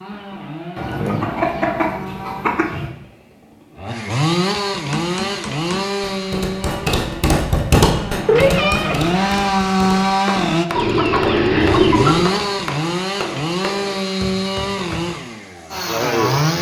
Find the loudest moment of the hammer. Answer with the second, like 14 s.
8 s.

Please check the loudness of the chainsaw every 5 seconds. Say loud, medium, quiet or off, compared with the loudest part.
medium, loud, loud, loud.